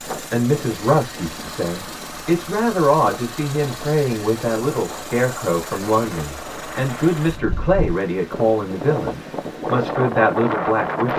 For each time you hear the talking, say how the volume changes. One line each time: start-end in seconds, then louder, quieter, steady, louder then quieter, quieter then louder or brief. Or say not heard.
0.3-11.1 steady.